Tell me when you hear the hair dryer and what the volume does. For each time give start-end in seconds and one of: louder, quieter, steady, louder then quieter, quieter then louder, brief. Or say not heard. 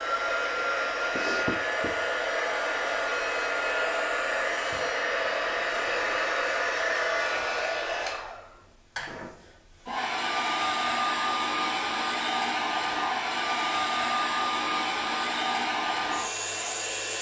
0.0-17.1 steady.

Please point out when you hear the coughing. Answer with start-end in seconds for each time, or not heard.
not heard.